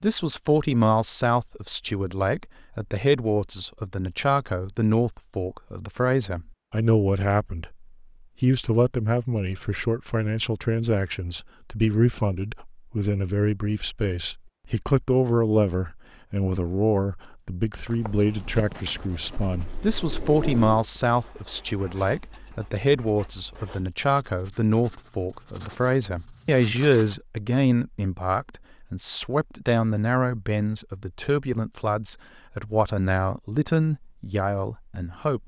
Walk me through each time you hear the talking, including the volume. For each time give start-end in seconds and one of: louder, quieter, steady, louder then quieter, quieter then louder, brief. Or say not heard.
0.0-35.4 steady.